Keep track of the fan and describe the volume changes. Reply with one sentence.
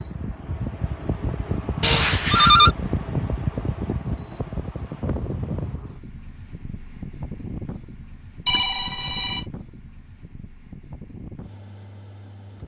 The volume of the fan goes down.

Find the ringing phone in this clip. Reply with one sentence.
You can hear the ringing phone from 1.8 to 2.7 s and from 8.4 to 9.4 s.